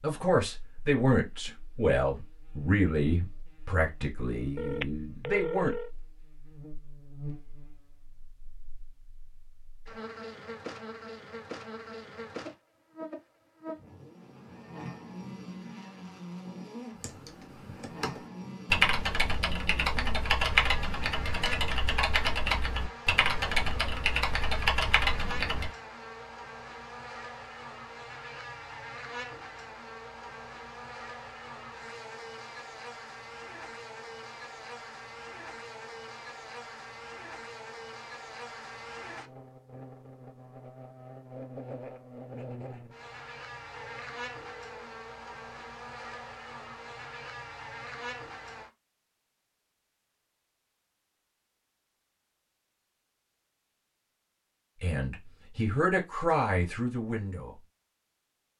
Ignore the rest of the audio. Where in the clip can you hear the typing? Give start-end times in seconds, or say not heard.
16.9-25.7.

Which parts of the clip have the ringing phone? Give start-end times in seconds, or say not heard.
4.5-5.9, 43.7-44.9.